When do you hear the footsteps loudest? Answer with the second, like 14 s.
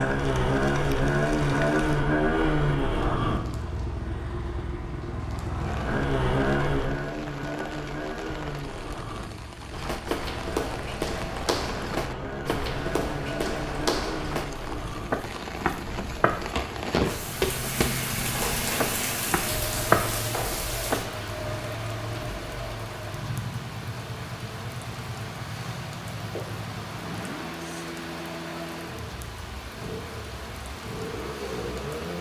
20 s.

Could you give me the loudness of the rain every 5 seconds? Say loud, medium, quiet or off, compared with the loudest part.
medium, medium, medium, loud, medium, medium, medium.